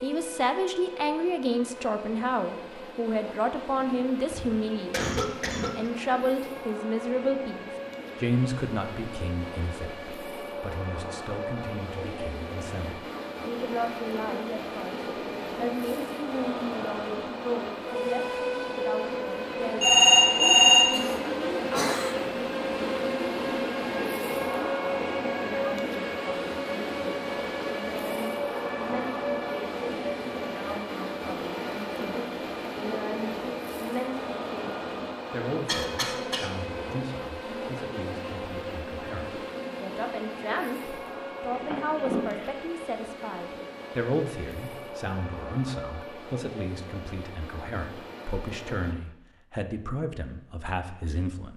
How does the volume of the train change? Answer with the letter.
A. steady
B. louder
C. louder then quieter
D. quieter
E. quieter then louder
C.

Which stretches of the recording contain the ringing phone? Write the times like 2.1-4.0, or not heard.
19.8-20.9, 41.5-42.5.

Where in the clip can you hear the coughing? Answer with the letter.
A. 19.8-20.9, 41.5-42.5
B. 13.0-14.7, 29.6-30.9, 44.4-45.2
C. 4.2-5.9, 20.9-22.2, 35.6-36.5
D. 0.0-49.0
C.